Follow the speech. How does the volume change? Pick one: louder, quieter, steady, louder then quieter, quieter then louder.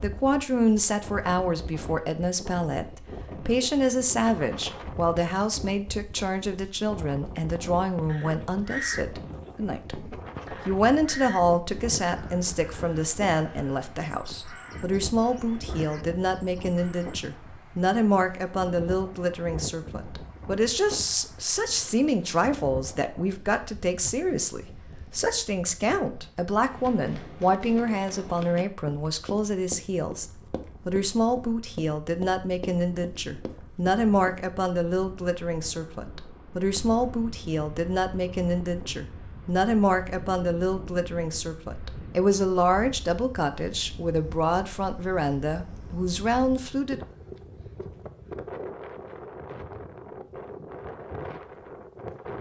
steady.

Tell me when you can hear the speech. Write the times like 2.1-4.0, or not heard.
0.0-10.1, 10.7-47.0.